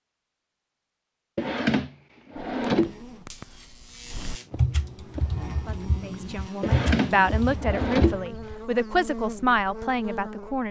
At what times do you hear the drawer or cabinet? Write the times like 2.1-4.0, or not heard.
1.4-3.0, 6.6-8.2.